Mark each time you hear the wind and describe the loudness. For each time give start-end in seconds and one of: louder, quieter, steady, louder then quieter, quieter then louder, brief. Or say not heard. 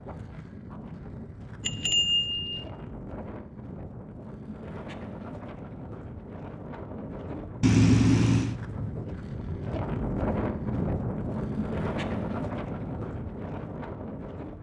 0.0-14.5 louder.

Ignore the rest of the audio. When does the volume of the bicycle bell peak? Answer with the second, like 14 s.
8 s.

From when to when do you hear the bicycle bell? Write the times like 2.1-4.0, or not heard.
1.6-2.6, 7.6-8.6.